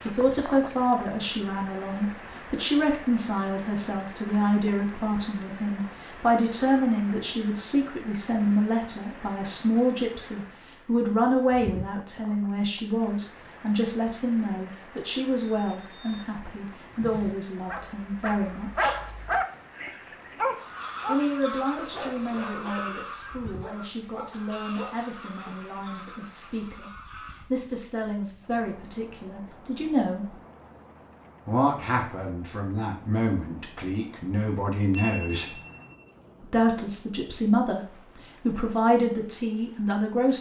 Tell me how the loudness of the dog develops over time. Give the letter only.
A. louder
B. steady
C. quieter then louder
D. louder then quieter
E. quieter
E.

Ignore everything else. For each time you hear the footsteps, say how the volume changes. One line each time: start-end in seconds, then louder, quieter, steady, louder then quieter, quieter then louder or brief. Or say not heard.
not heard.